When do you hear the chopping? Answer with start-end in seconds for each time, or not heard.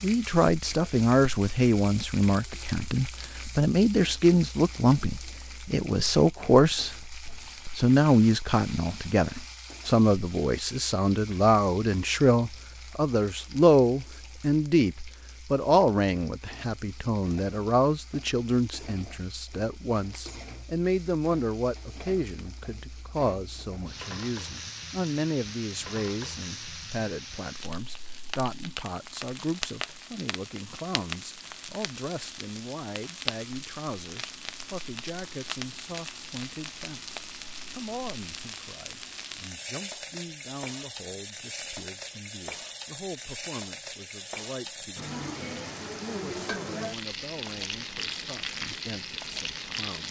not heard.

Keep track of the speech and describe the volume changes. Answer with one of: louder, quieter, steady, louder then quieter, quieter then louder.
quieter.